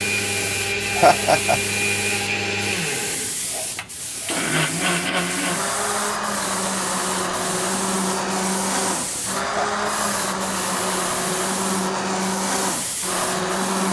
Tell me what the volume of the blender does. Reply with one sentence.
The loudness of the blender stays about the same.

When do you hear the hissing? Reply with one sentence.
You can hear the hissing from 0.0 to 13.8 s.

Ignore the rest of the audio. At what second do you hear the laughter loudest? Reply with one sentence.
The volume of the laughter peaks at 1 second.